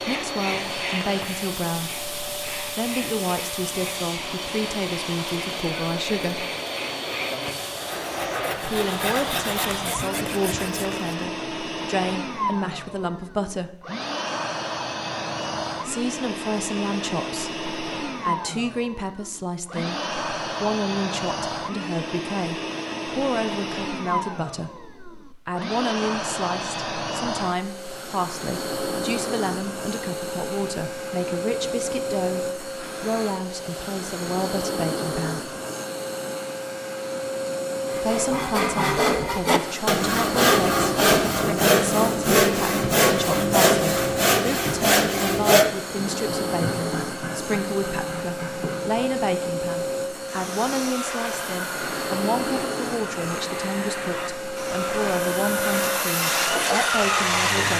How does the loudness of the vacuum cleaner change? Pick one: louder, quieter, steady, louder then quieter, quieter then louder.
steady.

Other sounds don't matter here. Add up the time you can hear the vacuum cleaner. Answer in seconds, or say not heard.
58 s.